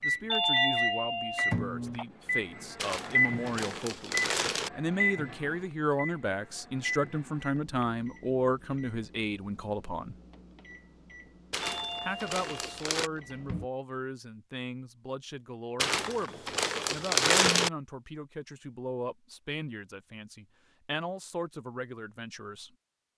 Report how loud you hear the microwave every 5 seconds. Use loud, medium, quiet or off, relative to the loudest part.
loud, medium, quiet, off, off.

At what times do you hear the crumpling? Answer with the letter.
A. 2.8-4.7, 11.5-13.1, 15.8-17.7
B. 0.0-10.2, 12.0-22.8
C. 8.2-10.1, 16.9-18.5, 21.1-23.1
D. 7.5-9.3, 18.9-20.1
A.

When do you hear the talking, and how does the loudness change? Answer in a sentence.
The talking can be heard from 0.0 to 10.2 s, getting louder; and from 12.0 to 22.8 s, at a steady volume.